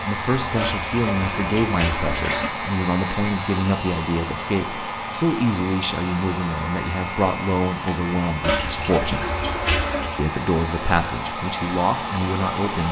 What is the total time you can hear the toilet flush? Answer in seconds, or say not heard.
4 s.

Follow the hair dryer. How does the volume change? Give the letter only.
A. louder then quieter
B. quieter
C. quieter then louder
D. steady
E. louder
D.